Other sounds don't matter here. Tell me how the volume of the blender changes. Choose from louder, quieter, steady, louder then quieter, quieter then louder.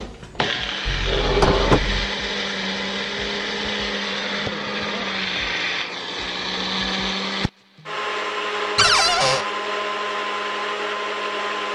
steady.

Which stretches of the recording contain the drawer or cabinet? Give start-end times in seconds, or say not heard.
0.8-2.1, 8.8-9.4.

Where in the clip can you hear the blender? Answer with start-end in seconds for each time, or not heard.
0.0-11.6.